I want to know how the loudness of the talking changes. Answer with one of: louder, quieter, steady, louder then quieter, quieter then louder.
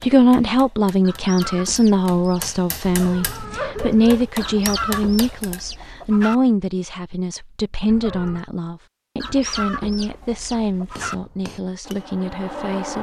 quieter.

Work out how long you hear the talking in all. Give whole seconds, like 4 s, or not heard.
13 s.